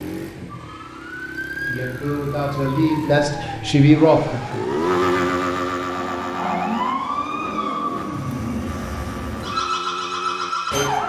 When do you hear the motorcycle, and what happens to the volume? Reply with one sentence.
You can hear the motorcycle from 0.0 to 10.8 s, getting louder then quieter.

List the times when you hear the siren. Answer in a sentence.
The siren can be heard from 0.1 to 11.0 s.